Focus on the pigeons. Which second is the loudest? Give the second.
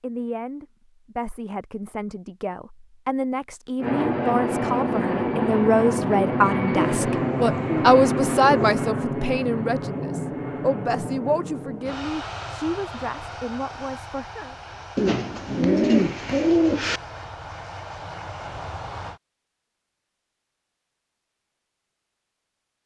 16 s.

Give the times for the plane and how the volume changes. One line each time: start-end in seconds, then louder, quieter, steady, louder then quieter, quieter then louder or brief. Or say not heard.
3.8-19.2 quieter.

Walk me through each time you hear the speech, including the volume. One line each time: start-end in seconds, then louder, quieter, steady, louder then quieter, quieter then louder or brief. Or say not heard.
0.0-14.6 louder then quieter.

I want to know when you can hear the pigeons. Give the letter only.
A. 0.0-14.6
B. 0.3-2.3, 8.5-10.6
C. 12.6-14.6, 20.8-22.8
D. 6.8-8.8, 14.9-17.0
D.